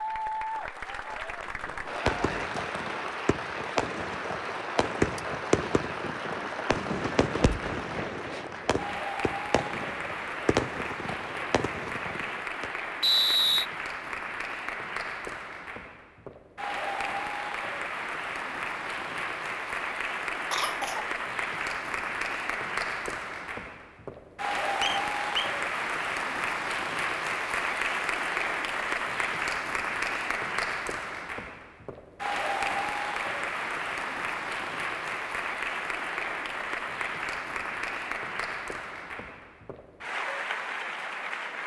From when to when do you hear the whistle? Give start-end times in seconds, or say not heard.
13.0-13.7, 24.8-25.5.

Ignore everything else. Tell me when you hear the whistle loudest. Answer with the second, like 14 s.
13 s.